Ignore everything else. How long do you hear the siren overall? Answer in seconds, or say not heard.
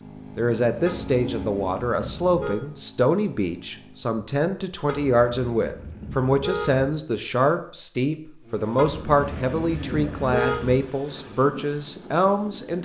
not heard.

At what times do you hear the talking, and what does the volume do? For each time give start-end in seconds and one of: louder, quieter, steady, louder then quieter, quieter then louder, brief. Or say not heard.
0.3-12.8 steady.